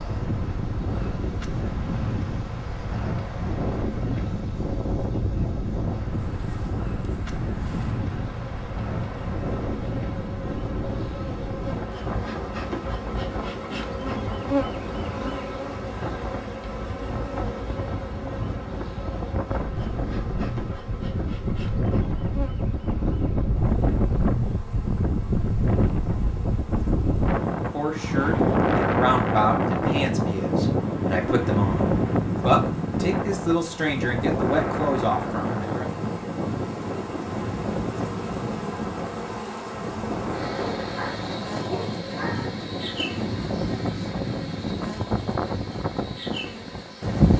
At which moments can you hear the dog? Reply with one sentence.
The dog can be heard from 40.4 to 42.6 s.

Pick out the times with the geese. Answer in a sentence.
The geese can't be heard in this clip.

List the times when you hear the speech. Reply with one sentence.
The speech can be heard from 27.6 to 35.9 s.